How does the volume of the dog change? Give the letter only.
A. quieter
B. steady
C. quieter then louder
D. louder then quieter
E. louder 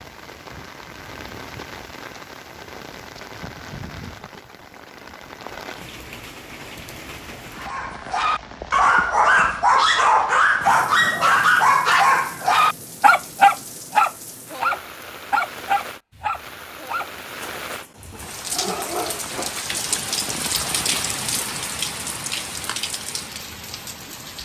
A.